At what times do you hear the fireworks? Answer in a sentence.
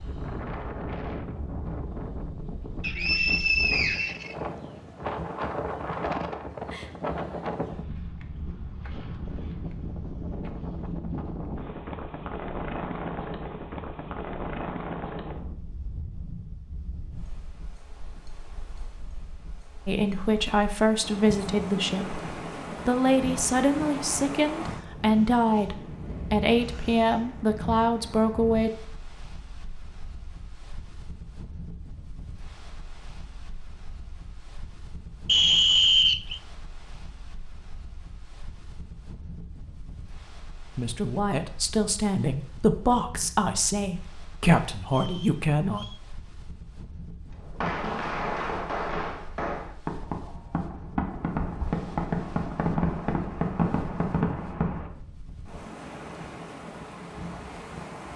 The fireworks can be heard from 47.3 to 54.9 s.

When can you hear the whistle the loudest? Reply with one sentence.
The volume of the whistle peaks at 36 seconds.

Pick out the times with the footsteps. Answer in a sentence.
You can't hear the footsteps here.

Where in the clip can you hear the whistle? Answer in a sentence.
You can hear the whistle from 2.8 to 4.3 s, from 35.2 to 36.4 s and from 44.9 to 46.0 s.